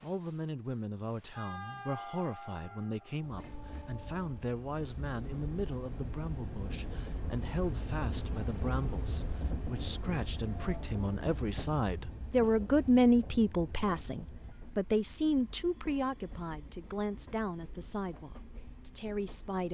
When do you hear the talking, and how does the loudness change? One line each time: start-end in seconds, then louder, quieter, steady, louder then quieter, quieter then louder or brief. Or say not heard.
0.0-19.6 louder then quieter.